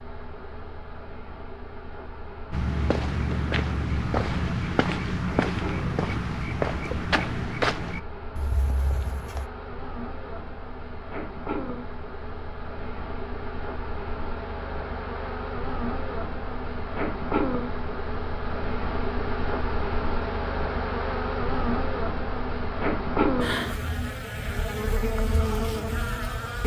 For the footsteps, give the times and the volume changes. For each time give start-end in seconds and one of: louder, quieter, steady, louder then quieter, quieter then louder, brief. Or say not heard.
2.5-9.5 quieter.